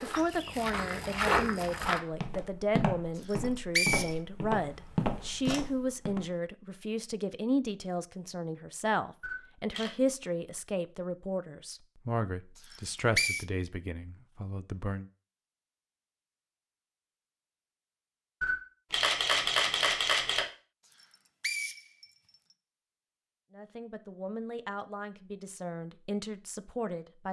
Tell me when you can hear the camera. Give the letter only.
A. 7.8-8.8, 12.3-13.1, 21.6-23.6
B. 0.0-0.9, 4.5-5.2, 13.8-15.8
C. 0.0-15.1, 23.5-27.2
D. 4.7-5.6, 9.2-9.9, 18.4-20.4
D.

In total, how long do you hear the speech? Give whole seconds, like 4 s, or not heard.
19 s.